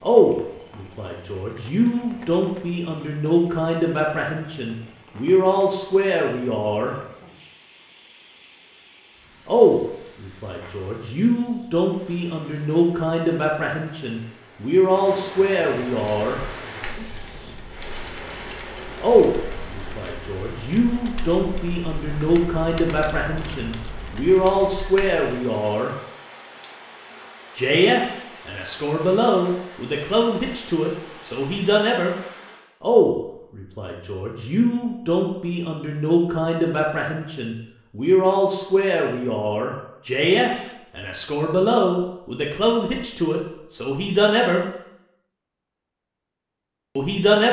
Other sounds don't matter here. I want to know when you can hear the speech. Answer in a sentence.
You can hear the speech from 0.0 to 7.0 s, from 9.4 to 16.4 s, from 19.0 to 25.9 s, from 27.6 to 32.1 s, from 32.8 to 44.6 s and from 47.0 to 47.4 s.